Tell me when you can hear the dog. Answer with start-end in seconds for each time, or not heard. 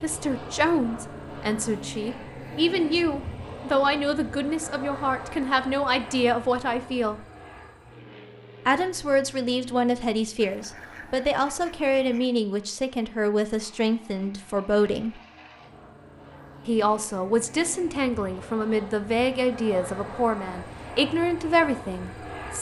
not heard.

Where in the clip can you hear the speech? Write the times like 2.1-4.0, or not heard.
0.0-7.2, 8.7-15.2, 16.6-22.5.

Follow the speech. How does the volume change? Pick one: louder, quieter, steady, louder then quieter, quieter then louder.
steady.